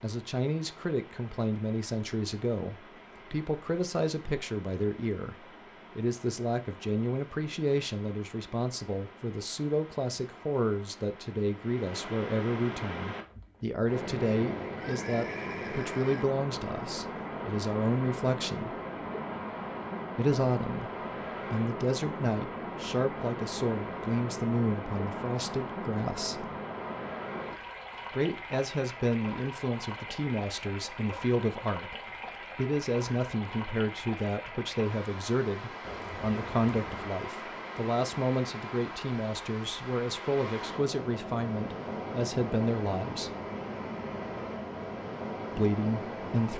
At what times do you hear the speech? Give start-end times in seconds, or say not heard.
0.0-18.8, 20.1-26.5, 28.1-43.4, 45.5-46.5.